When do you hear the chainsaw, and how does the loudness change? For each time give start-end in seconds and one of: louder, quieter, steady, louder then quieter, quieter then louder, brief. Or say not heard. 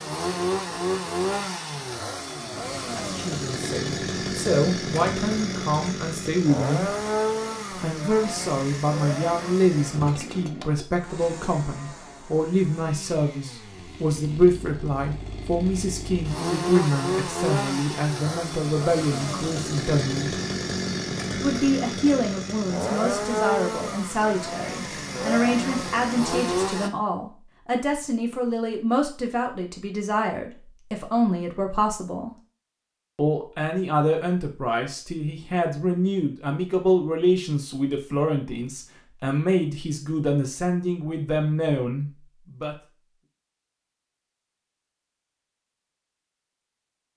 0.0-26.9 quieter then louder.